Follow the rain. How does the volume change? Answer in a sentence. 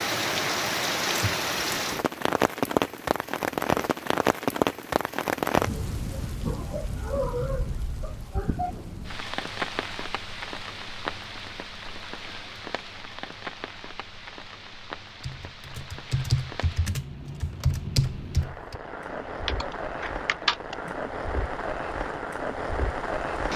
The loudness of the rain goes down, then up.